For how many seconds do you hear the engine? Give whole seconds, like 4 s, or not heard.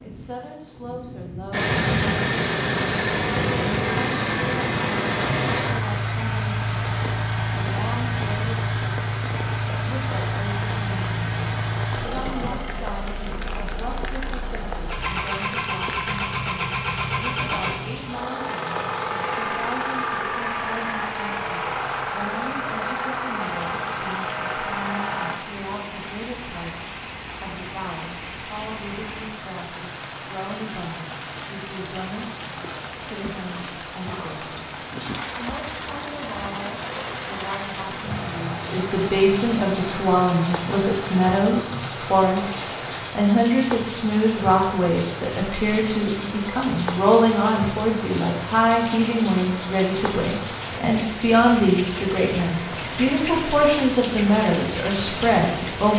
29 s.